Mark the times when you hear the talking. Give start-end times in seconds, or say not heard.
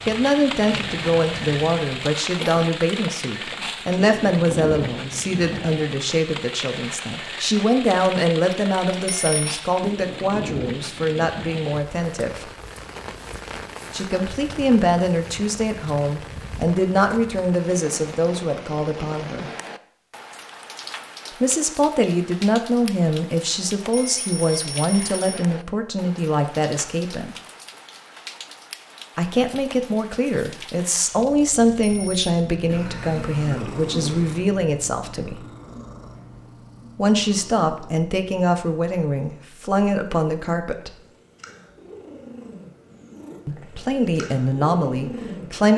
0.0-12.5, 13.9-19.5, 21.4-27.4, 29.1-35.5, 37.0-41.0, 43.5-45.7.